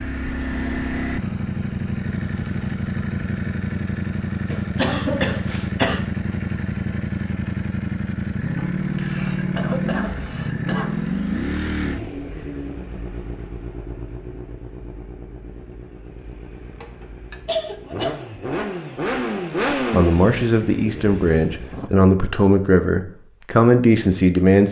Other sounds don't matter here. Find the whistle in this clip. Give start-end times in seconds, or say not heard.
not heard.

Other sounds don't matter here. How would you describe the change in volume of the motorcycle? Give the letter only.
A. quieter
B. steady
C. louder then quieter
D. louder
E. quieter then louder
E.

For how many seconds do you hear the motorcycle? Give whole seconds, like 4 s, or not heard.
22 s.